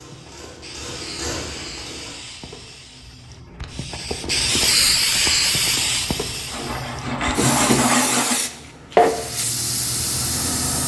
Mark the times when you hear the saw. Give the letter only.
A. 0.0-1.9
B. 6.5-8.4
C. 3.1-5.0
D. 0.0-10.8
B.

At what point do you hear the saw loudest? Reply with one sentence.
The loudest moment of the saw is at 8 seconds.